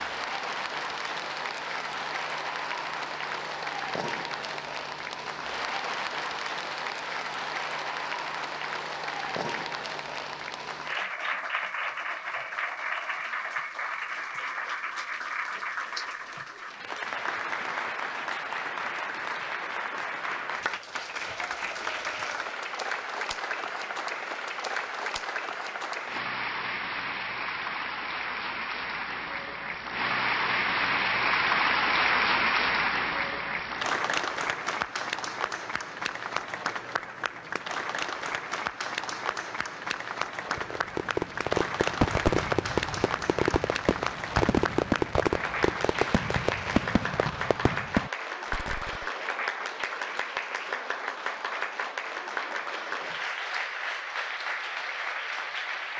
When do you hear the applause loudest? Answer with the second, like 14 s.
32 s.